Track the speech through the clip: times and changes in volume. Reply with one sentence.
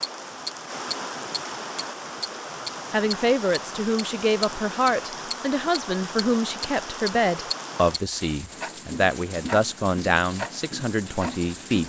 You can hear the speech from 2.9 to 11.8 s, at a steady volume.